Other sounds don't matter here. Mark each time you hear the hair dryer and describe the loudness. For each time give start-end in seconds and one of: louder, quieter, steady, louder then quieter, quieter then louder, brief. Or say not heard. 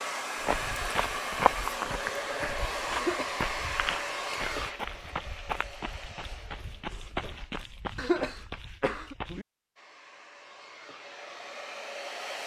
0.0-7.7 quieter
9.8-12.4 brief.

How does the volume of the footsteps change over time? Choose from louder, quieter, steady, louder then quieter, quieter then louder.
quieter.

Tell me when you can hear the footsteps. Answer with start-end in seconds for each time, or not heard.
0.4-9.4.